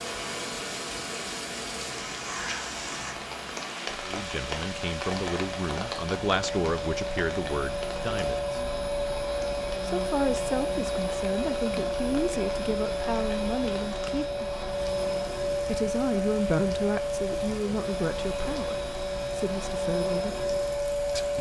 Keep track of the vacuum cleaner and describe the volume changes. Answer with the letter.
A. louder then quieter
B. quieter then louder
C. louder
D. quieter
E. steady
C.